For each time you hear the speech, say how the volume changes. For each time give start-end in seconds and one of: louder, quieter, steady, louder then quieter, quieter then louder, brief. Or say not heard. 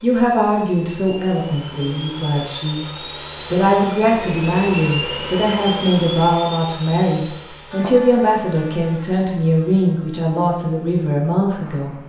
0.0-2.9 brief
3.5-11.9 steady.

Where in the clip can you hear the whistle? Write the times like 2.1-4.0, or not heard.
not heard.